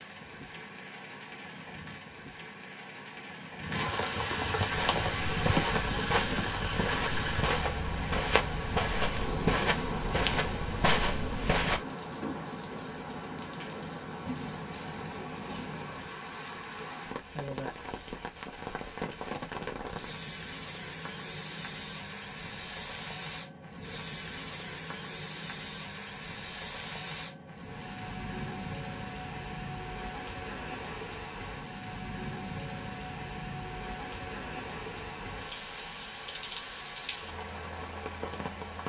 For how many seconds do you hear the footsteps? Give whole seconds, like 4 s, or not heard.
7 s.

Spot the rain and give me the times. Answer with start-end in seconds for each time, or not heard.
0.0-38.8.